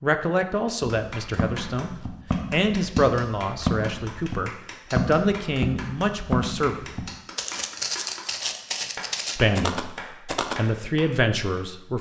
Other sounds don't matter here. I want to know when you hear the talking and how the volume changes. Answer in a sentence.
The talking can be heard from 0.0 to 6.8 s, at a steady volume; and briefly from 9.3 to 11.9 s.